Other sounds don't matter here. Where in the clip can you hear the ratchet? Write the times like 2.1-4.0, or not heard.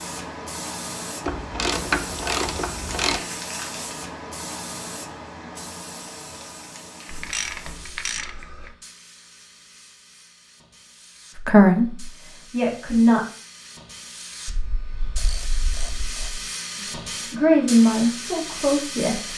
1.2-3.2, 7.0-8.7, 14.4-16.5.